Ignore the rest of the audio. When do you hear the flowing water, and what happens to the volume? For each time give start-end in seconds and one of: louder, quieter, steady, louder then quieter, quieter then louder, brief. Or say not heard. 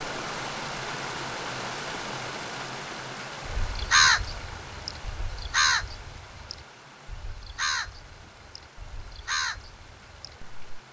0.0-10.8 quieter.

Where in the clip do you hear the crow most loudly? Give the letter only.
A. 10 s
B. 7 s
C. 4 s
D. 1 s
C.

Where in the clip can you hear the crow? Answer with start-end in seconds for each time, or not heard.
3.5-10.8.